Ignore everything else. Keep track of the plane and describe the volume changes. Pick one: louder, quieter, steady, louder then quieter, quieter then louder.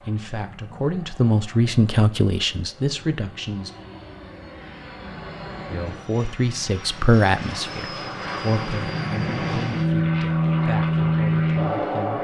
louder.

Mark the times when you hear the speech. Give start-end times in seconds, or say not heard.
0.0-3.7, 5.7-12.2.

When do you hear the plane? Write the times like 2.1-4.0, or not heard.
0.0-12.2.